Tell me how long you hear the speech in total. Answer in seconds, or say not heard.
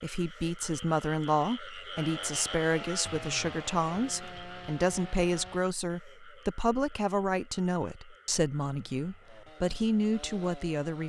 11 s.